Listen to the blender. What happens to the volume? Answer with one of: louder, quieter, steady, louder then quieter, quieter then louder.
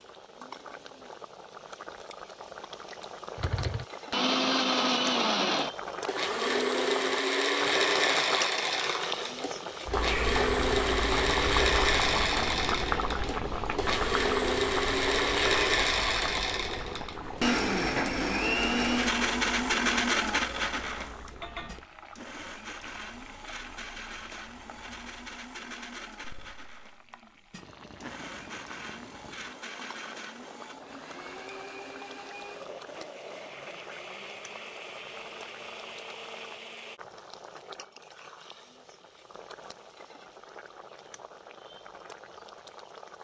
quieter.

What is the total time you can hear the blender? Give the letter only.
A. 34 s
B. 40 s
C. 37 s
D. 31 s
A.